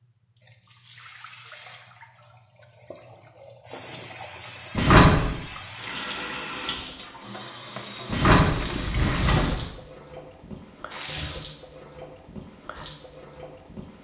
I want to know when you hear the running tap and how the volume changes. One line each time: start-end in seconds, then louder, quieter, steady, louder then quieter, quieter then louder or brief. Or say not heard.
0.0-14.0 louder.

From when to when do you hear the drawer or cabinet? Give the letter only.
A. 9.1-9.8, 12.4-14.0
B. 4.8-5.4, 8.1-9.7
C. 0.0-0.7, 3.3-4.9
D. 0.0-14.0
B.